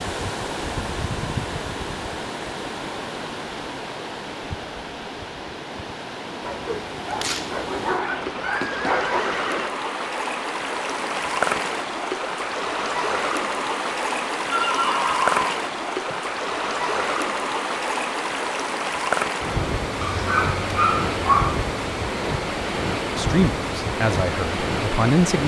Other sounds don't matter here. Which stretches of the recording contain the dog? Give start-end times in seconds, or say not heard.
6.4-9.2, 20.0-21.6.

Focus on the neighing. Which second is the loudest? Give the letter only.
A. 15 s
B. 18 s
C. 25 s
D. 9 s
A.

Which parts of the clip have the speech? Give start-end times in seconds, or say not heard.
23.1-25.4.